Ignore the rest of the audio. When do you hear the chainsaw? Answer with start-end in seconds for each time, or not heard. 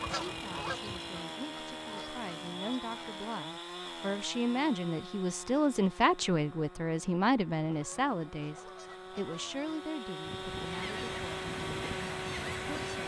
0.0-13.0.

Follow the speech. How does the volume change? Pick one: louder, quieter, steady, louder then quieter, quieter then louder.
louder then quieter.